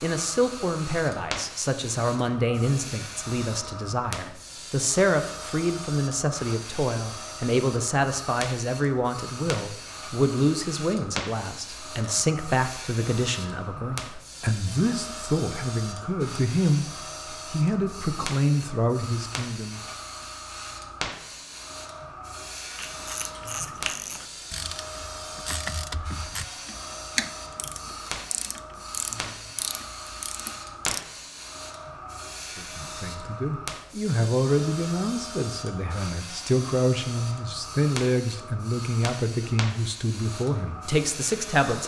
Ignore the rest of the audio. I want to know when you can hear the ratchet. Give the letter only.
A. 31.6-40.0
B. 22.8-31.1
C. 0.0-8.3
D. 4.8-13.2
B.